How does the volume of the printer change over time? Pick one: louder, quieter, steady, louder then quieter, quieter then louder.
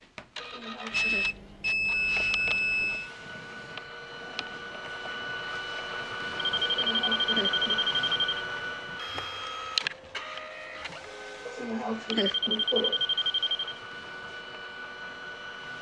louder then quieter.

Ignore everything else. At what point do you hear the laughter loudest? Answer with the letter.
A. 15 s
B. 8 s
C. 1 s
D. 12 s
D.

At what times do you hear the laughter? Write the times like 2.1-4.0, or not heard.
0.4-1.3, 6.7-7.8, 11.4-13.1.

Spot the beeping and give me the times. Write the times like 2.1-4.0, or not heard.
0.9-3.1, 6.6-8.2, 12.1-13.8.